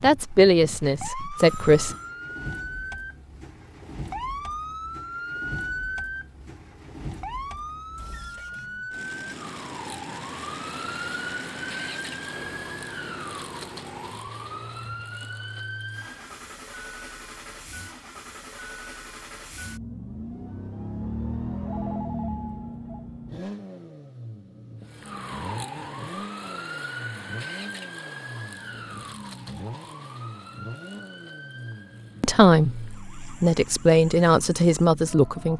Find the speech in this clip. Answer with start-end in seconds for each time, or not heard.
0.0-1.9, 32.2-35.5.